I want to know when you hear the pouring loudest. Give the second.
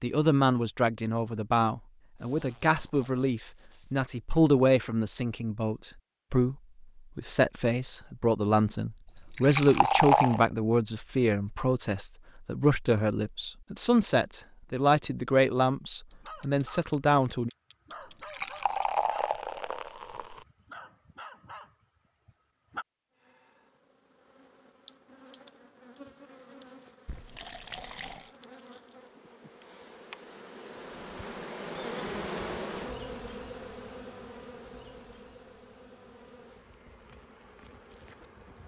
10 s.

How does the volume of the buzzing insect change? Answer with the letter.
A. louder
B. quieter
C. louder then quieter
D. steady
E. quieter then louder
C.